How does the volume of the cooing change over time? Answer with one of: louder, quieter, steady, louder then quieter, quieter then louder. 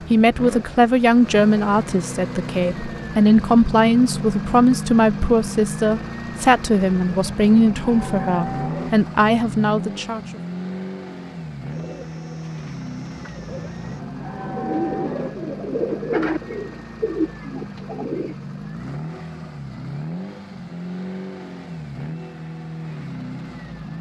louder.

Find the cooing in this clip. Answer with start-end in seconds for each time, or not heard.
11.7-18.4.